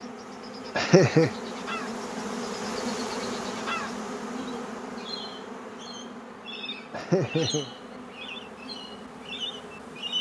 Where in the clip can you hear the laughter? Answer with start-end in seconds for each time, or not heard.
0.8-1.3, 6.9-7.7.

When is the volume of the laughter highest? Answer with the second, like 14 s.
1 s.